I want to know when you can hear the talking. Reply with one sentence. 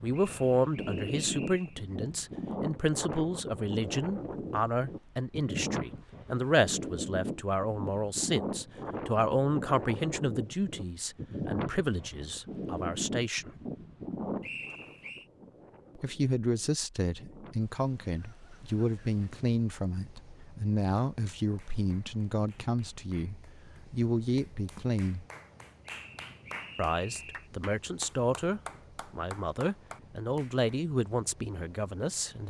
You can hear the talking from 0.0 to 13.5 s, from 15.9 to 25.2 s and from 26.8 to 32.4 s.